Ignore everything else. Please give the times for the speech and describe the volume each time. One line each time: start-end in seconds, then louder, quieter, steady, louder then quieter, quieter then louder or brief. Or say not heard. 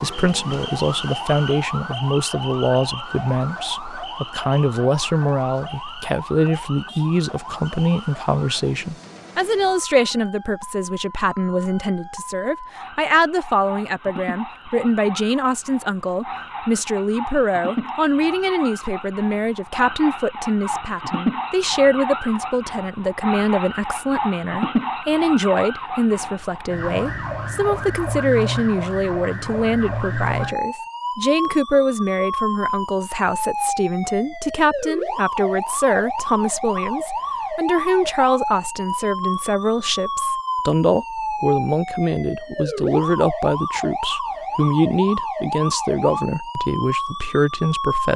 0.0-48.1 steady.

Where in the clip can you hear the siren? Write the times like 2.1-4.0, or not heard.
0.0-48.1.